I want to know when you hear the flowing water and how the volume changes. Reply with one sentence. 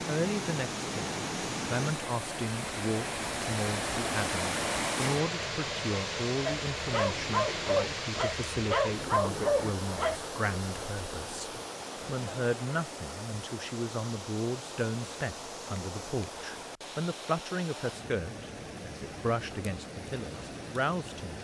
The flowing water can be heard from 0.0 to 21.3 s, getting quieter.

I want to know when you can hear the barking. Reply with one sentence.
You can hear the barking from 6.5 to 10.2 s.